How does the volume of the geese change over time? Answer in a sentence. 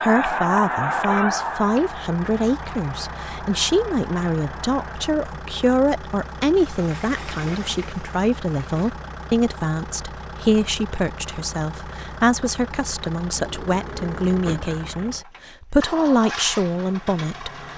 The volume of the geese goes down.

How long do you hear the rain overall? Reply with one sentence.
The rain can't be heard in this clip.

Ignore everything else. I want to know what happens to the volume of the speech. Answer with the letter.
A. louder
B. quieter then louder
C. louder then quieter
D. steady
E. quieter
D.